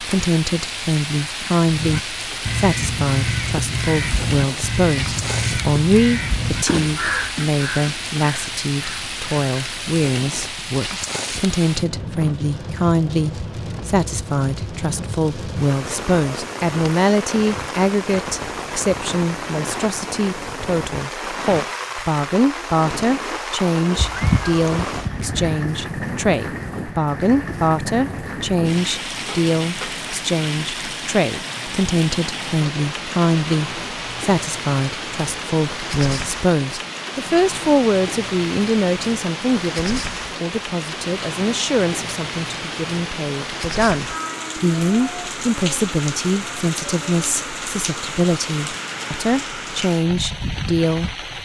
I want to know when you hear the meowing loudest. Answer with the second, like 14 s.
24 s.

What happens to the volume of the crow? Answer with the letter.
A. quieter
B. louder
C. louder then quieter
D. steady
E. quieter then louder
A.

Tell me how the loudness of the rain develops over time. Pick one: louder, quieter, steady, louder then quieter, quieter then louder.
steady.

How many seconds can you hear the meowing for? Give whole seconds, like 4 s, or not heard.
2 s.